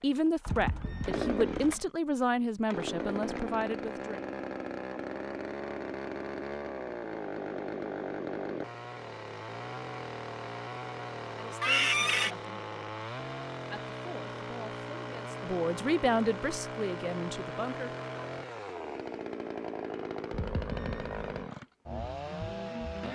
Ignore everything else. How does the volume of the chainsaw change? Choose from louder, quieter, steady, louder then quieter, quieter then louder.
steady.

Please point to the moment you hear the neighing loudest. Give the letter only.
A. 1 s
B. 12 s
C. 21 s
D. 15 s
B.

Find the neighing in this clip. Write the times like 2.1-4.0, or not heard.
0.5-1.9, 11.6-12.3, 20.3-21.4.